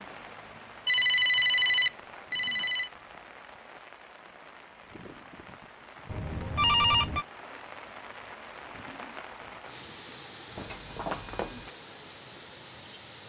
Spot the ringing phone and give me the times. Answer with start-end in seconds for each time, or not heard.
0.8-2.9, 6.0-7.2, 10.6-11.7.